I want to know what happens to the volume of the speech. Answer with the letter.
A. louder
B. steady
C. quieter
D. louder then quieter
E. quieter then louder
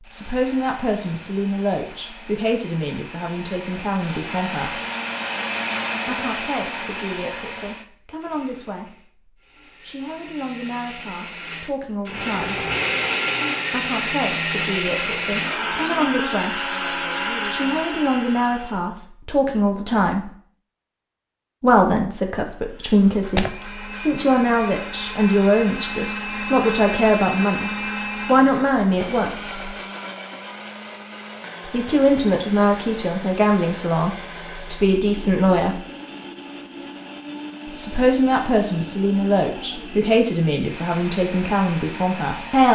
A.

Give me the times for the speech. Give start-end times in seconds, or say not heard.
0.1-4.8, 6.0-12.7, 13.7-20.3, 21.6-29.8, 31.6-35.9, 37.6-42.6.